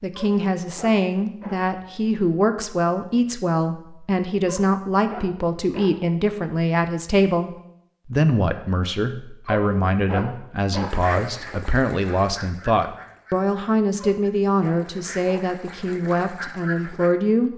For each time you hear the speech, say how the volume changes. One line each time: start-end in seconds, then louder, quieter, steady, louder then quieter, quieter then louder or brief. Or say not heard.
0.0-17.5 steady.